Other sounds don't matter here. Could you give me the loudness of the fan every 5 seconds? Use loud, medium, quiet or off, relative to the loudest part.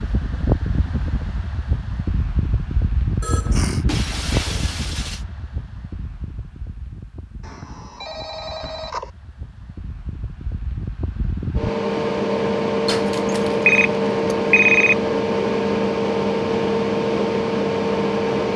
medium, quiet, loud, loud.